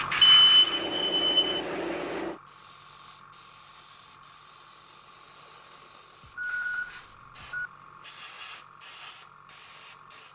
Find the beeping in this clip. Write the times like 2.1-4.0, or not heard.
0.2-1.6, 6.2-7.7.